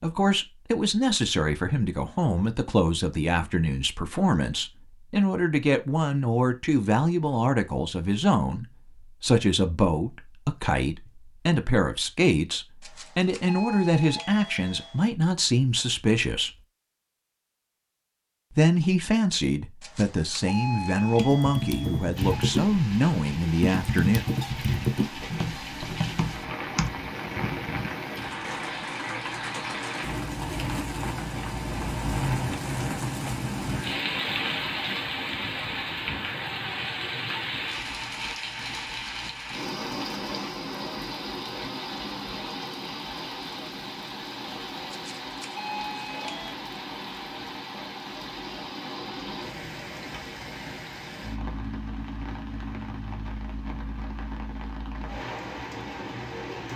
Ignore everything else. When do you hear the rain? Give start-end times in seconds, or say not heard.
22.1-56.7.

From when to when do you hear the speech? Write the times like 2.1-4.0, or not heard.
0.0-16.5, 18.6-24.2.